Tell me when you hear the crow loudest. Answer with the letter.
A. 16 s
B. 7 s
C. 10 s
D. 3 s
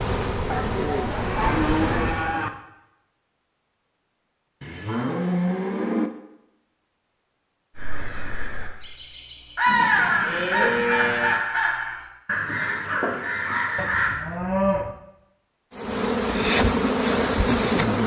C.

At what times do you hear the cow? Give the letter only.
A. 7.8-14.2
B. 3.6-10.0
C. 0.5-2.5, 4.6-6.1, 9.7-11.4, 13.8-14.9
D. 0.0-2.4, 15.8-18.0
C.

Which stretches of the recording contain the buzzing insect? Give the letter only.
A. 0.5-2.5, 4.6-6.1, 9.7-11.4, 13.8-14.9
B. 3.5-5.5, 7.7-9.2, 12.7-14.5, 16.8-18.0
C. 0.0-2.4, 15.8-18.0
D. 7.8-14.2
C.